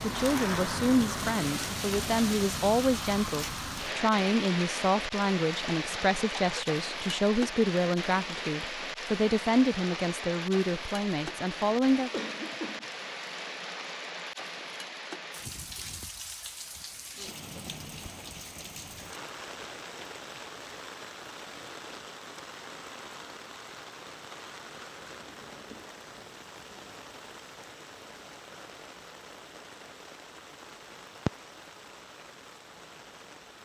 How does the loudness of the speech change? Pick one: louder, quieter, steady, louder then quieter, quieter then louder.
steady.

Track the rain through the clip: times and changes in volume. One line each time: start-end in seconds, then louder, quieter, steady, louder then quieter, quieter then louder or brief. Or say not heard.
0.0-33.6 quieter.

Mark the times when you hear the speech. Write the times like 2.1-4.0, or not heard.
0.0-12.1.